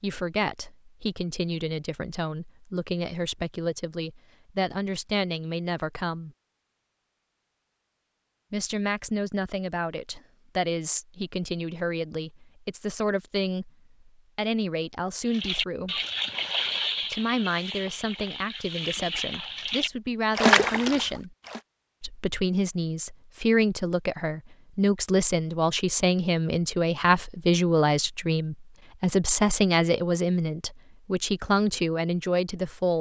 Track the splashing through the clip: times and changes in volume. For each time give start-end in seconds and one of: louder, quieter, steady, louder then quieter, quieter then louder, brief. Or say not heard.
15.3-21.6 quieter then louder.